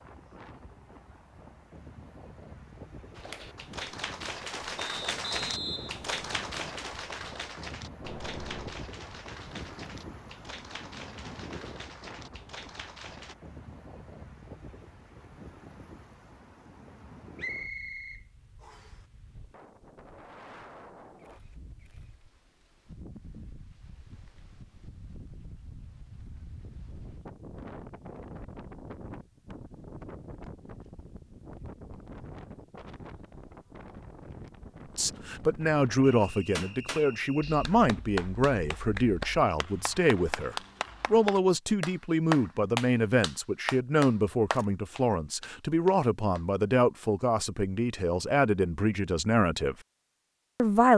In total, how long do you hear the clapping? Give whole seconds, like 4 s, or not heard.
20 s.